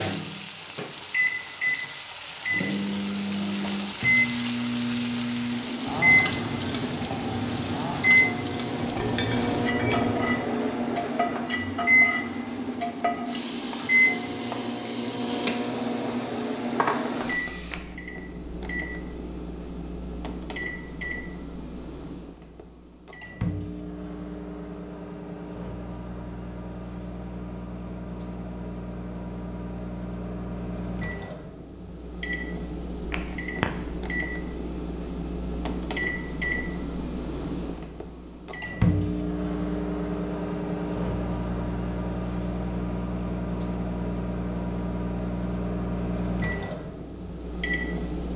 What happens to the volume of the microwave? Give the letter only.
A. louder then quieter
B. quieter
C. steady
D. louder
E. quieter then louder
E.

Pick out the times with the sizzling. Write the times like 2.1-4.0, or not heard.
0.0-17.8.